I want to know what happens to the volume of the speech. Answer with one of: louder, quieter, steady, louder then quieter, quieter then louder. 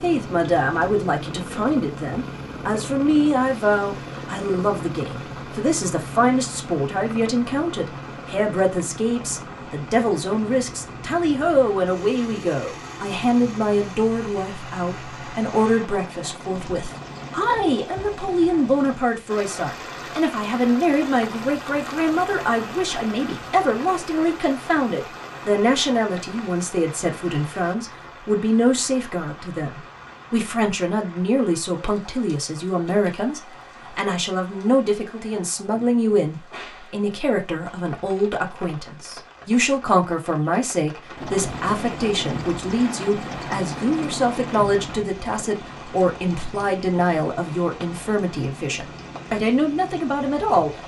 steady.